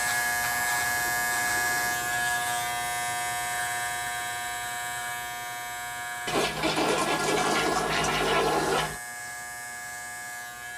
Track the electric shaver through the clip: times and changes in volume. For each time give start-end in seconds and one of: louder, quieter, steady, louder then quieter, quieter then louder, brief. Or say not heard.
0.0-10.7 quieter.